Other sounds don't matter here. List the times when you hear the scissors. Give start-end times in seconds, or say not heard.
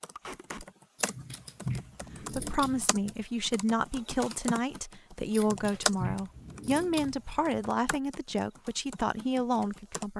0.9-3.2, 5.3-7.5.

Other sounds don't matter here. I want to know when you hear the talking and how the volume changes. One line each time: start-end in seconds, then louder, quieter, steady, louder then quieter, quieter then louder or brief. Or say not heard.
2.3-10.1 steady.